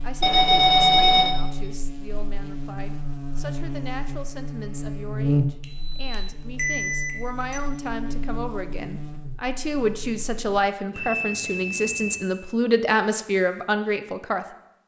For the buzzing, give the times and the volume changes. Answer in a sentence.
The buzzing can be heard from 0.0 to 10.6 s, getting louder then quieter.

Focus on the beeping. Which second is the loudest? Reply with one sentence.
The volume of the beeping peaks at 1 second.